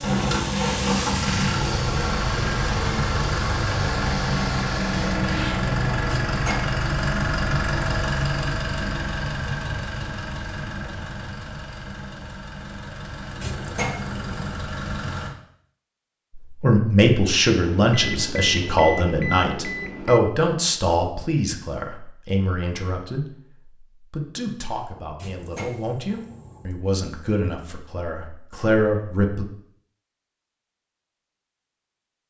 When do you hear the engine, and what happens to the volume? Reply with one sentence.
You can hear the engine from 0.0 to 15.3 s, getting quieter.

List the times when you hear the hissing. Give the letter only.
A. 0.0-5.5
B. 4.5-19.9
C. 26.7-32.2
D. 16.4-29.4
A.